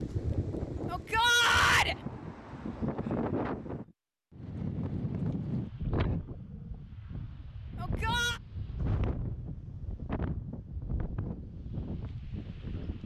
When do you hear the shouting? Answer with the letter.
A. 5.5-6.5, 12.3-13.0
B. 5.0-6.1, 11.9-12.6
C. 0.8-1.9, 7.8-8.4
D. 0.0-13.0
C.